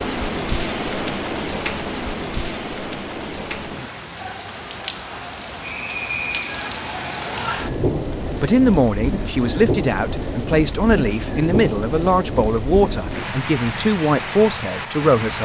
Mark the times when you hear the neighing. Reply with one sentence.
The neighing can't be heard in this clip.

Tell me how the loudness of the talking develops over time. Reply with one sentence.
The loudness of the talking stays about the same.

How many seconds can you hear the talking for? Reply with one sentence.
The talking can be heard for 7 seconds in total.